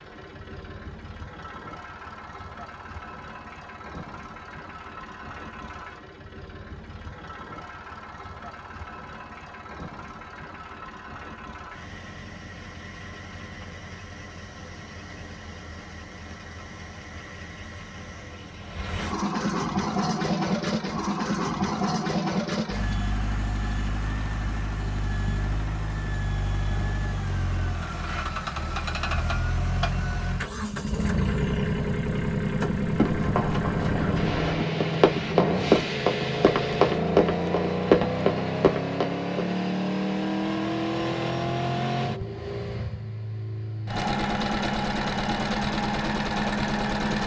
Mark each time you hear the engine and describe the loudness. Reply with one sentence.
The engine can be heard from 0.0 to 47.2 s, getting louder.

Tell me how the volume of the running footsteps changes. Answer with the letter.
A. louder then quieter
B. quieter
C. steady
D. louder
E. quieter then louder
D.